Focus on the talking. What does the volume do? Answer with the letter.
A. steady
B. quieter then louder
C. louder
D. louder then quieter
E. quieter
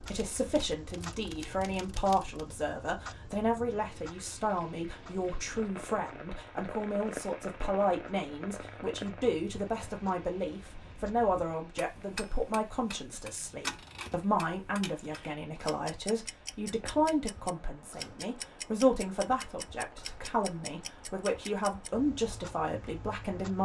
A.